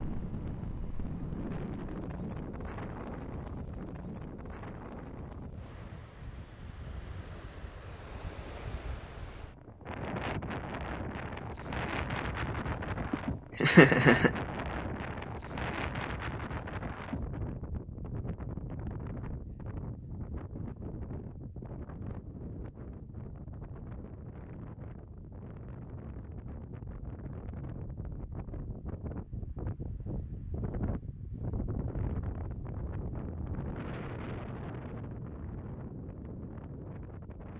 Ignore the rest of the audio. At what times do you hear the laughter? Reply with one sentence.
You can hear the laughter from 13.1 to 14.3 s.